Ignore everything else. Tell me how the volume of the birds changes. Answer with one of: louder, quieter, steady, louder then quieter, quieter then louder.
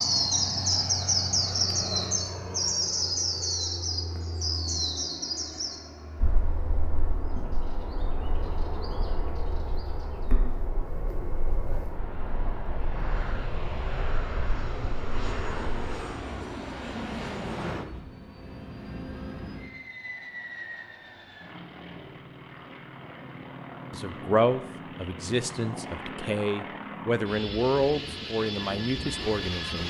quieter.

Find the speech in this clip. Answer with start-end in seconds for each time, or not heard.
23.9-29.8.